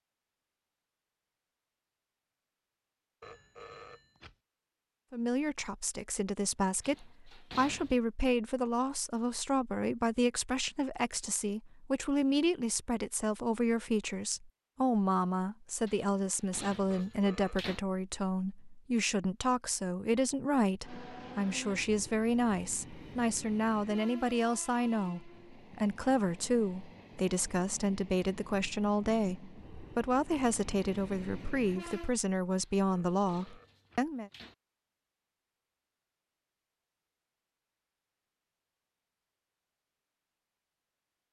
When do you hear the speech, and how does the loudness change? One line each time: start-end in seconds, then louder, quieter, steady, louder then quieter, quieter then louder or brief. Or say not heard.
5.1-34.3 steady.